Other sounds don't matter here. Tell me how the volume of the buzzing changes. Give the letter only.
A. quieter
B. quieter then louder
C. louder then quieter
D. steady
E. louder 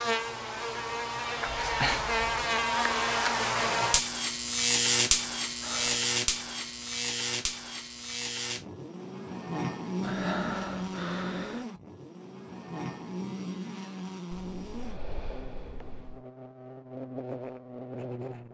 A.